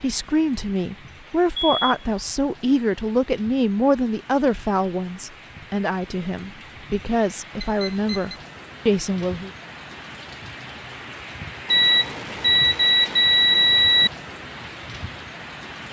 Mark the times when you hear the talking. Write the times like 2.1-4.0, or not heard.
0.0-9.5.